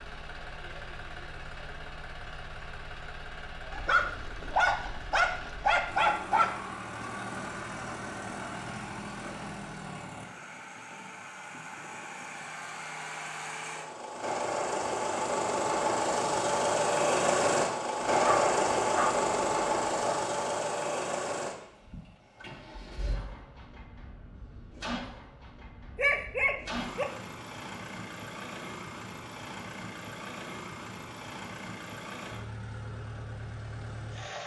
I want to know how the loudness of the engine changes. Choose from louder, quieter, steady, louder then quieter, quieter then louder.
louder then quieter.